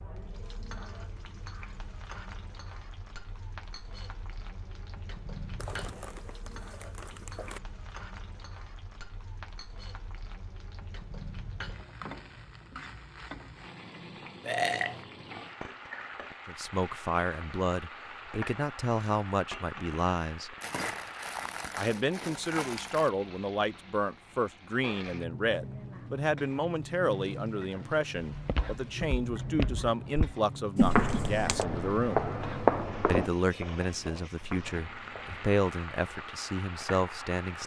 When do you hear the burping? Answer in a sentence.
The burping can be heard from 14.4 to 15.1 s.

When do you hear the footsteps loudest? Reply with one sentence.
The volume of the footsteps peaks at 33 seconds.